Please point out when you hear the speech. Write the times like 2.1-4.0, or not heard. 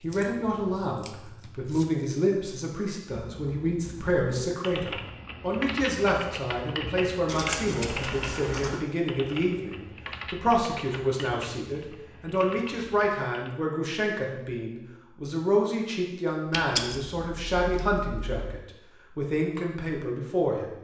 0.0-20.7.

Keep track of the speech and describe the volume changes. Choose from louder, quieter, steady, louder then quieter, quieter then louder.
steady.